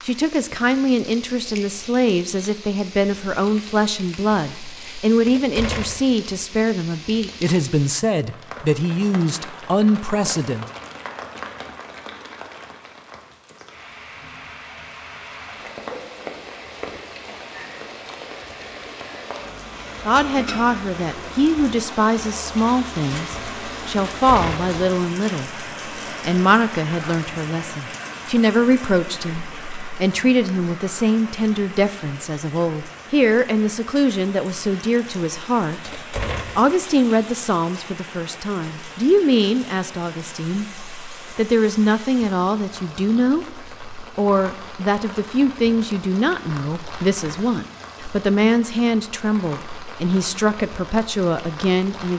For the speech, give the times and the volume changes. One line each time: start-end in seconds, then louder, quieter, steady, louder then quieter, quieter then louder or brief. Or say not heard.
0.0-10.7 steady
20.1-52.1 steady.